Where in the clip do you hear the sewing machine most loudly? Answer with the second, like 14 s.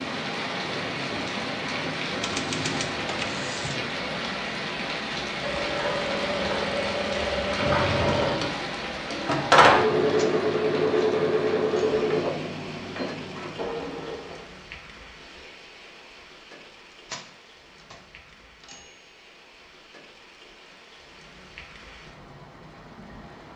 10 s.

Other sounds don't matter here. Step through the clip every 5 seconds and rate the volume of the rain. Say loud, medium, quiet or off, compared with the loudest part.
loud, loud, medium, quiet, quiet.